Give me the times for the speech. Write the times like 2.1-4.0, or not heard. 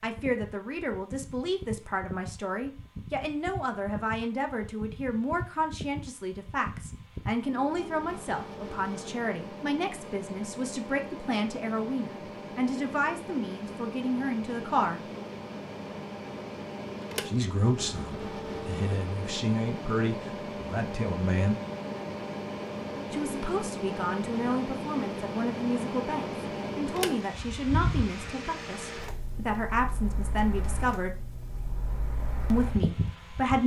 0.0-15.0, 17.2-21.6, 23.1-31.2, 32.5-33.6.